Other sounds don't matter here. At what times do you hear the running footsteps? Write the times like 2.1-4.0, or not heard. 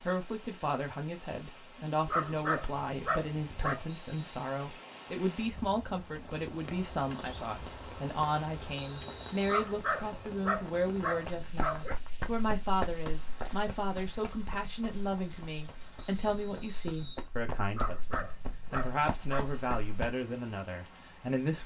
11.2-20.1.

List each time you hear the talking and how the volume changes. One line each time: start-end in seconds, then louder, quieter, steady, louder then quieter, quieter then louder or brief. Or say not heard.
0.0-21.6 steady.